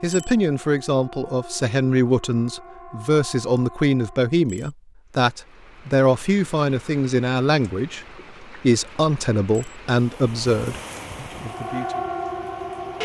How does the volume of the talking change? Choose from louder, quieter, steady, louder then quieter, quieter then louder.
steady.